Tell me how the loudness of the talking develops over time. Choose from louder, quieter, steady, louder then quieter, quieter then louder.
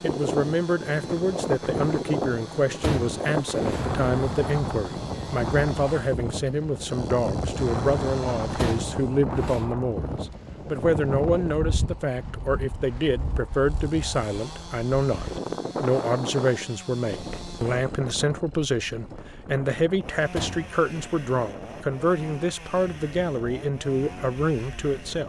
steady.